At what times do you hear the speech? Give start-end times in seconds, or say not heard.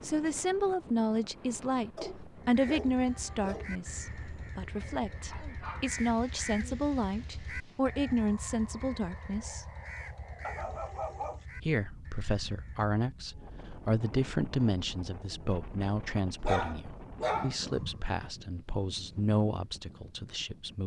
0.0-9.7, 11.6-20.8.